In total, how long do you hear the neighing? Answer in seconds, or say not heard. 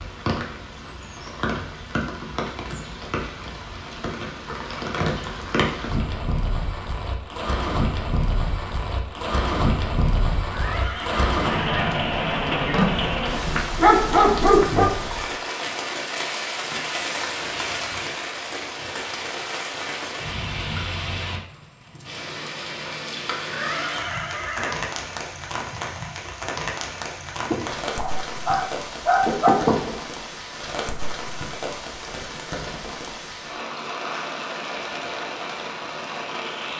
3 s.